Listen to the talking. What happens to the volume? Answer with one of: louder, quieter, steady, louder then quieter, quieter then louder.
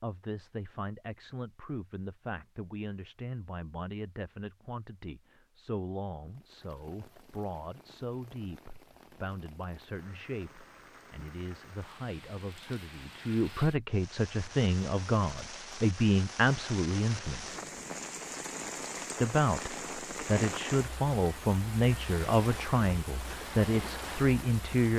louder.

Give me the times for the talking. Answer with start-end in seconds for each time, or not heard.
0.0-17.6, 19.2-24.9.